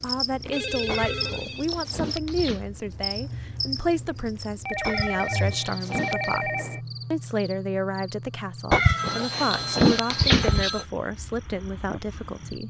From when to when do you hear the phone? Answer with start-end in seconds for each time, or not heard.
0.5-1.6, 4.7-6.8, 8.9-10.8.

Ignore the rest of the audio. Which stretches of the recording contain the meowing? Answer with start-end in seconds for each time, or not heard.
0.8-2.6, 4.8-6.4, 8.7-10.7.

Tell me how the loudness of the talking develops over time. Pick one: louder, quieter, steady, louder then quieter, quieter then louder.
steady.